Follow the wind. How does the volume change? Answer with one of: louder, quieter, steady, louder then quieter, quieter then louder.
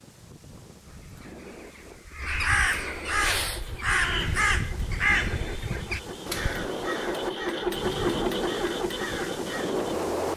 louder.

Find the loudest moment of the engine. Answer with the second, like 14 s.
8 s.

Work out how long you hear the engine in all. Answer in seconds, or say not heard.
7 s.